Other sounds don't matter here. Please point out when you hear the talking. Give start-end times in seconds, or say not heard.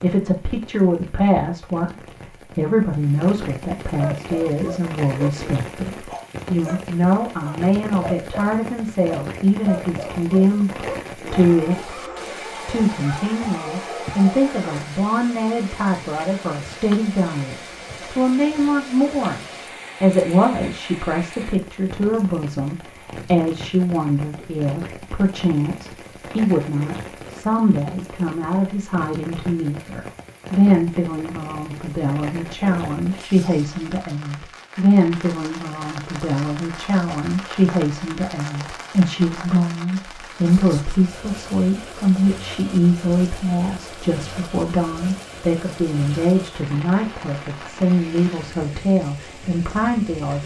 0.0-1.9, 2.5-12.0, 12.7-50.4.